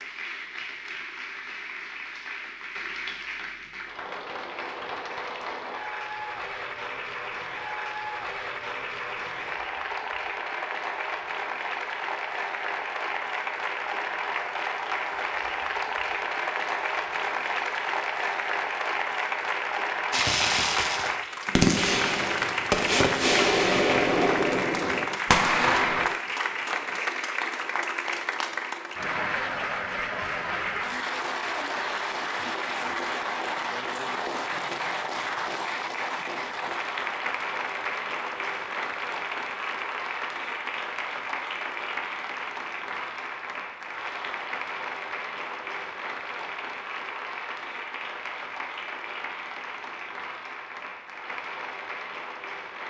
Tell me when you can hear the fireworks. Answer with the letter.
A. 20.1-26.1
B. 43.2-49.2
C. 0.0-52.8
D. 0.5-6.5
A.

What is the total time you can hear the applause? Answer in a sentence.
The applause can be heard for 53 seconds in total.